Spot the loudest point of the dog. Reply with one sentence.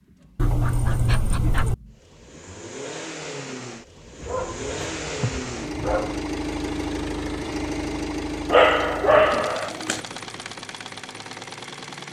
The volume of the dog peaks at 9 seconds.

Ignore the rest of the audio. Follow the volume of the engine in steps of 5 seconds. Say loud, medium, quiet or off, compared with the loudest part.
medium, loud, medium.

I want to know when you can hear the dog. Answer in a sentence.
You can hear the dog from 0.3 to 1.8 s, from 4.2 to 6.2 s and from 8.5 to 10.0 s.